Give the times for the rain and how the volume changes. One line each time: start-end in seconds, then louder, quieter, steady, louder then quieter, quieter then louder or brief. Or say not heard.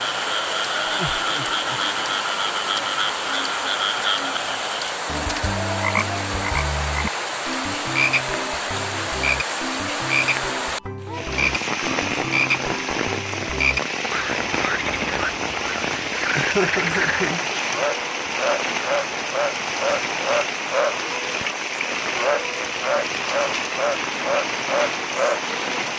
0.0-25.9 steady.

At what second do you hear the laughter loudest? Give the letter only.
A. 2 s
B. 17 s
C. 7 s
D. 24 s
B.